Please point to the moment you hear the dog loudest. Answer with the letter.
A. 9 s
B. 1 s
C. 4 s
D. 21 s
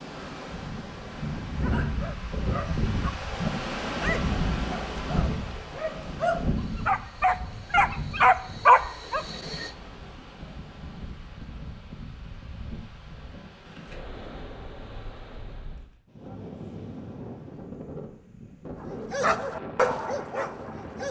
A.